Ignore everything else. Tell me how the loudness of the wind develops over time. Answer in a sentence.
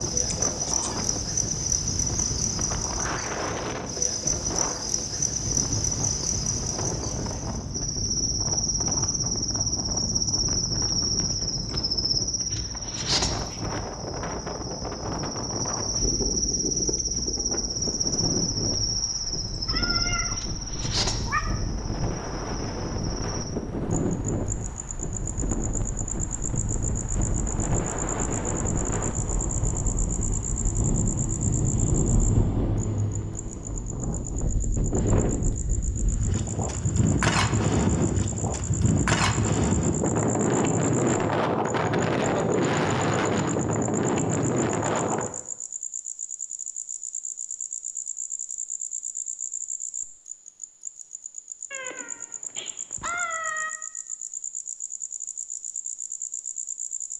The loudness of the wind goes up.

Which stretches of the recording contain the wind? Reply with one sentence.
You can hear the wind from 0.0 to 45.3 s.